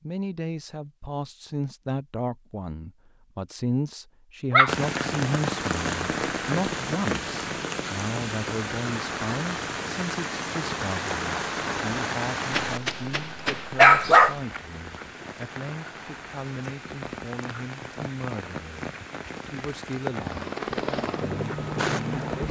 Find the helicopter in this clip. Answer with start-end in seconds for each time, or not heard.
20.1-22.4.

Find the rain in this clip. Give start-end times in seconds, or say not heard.
4.7-22.4.